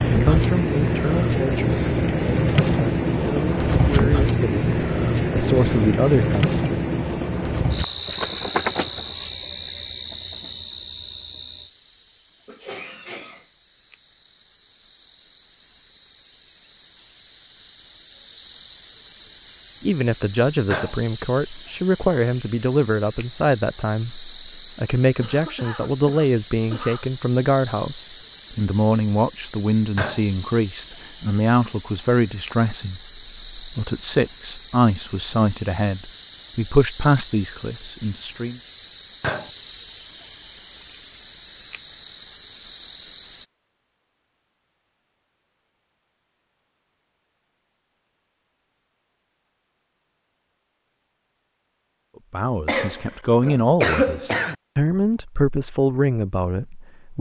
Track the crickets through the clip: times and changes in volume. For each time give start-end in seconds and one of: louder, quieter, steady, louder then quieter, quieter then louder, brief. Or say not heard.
0.0-43.5 quieter then louder.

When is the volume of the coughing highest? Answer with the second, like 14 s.
54 s.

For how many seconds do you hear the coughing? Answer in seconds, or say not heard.
5 s.